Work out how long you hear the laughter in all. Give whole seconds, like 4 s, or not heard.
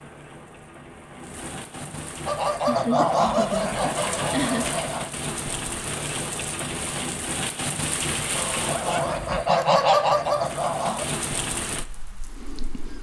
2 s.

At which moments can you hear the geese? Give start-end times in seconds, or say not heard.
2.2-5.1, 8.3-11.1.